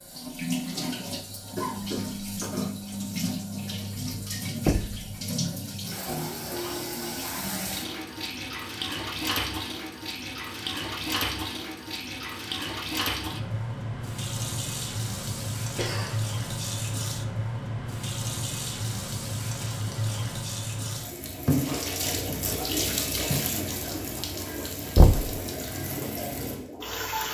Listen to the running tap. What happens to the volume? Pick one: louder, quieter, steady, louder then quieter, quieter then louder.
steady.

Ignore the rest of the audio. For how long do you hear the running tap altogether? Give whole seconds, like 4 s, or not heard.
27 s.